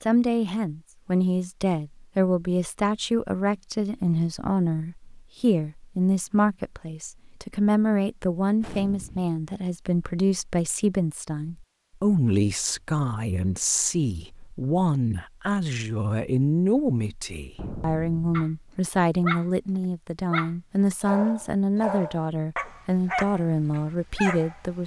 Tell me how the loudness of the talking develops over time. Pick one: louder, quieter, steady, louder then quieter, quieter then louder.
steady.